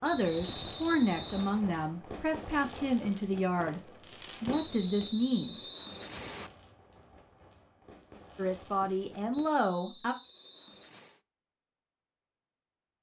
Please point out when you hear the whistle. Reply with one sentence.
You can hear the whistle from 0.0 to 1.6 s, from 4.5 to 6.5 s and from 9.3 to 11.2 s.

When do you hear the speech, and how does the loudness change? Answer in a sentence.
You can hear the speech from 0.0 to 5.6 s, at a steady volume; and briefly from 8.3 to 10.2 s.